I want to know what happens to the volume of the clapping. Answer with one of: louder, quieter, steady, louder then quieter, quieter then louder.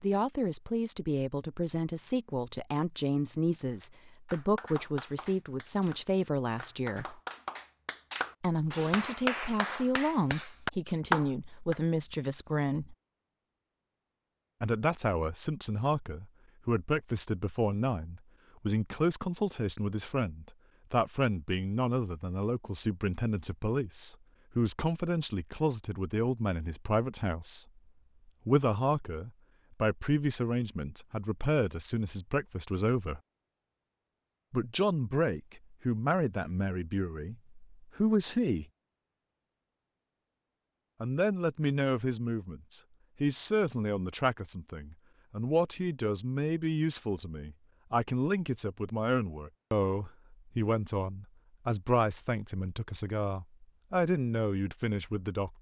louder.